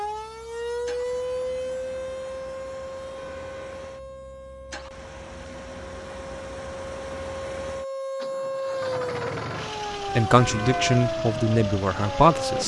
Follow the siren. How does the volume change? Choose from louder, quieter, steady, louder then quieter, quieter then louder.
quieter then louder.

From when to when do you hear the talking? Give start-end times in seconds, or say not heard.
10.2-12.6.